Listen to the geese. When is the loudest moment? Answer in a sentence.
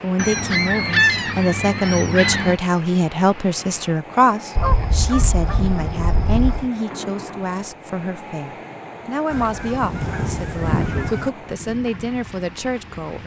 The volume of the geese peaks at 1 second.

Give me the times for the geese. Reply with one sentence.
You can hear the geese from 0.1 to 2.6 s, from 4.5 to 6.7 s and from 9.3 to 11.3 s.